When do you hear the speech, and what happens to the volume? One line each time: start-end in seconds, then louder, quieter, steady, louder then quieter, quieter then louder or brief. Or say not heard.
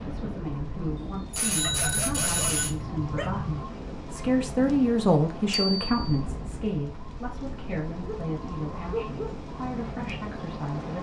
0.1-10.9 louder then quieter.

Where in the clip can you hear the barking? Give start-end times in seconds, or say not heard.
1.6-3.5, 8.0-9.4.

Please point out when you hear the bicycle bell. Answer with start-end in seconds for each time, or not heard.
0.9-2.8, 5.5-6.2.